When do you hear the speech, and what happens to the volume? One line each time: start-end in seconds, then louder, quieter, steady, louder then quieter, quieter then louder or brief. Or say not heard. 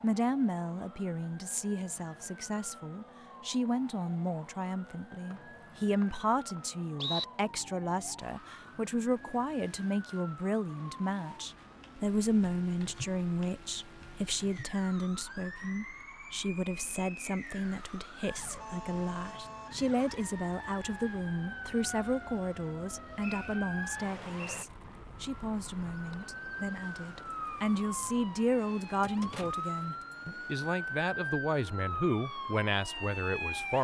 0.0-33.7 steady.